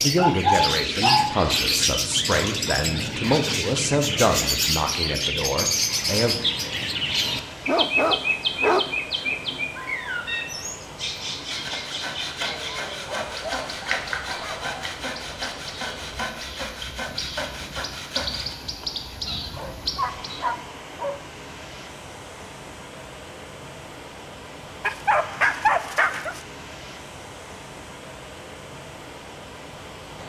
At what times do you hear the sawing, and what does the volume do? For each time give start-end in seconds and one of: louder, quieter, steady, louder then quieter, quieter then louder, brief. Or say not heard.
11.4-18.6 steady.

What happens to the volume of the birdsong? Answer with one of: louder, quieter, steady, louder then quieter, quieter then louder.
quieter.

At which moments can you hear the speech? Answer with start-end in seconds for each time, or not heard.
0.0-6.3.